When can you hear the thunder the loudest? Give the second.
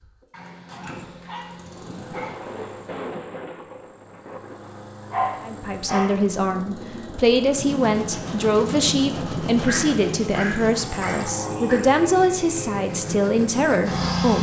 3 s.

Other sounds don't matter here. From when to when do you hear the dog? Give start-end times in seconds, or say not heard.
0.3-2.4, 5.1-6.2, 9.7-11.8.